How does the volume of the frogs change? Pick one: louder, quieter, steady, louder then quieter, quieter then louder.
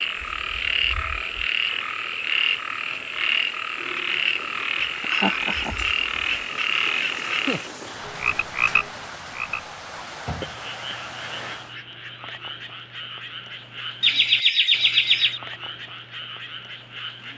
quieter.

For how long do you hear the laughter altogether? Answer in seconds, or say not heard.
2 s.